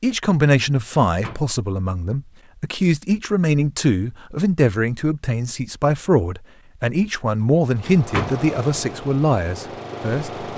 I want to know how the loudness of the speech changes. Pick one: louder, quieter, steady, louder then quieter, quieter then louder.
steady.